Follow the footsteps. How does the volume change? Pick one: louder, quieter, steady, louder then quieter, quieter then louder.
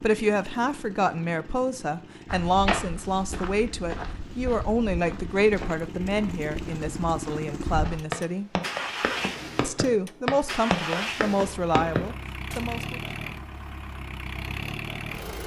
quieter then louder.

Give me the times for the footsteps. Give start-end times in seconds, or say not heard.
2.2-12.6.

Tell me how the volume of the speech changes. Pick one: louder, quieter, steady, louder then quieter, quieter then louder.
steady.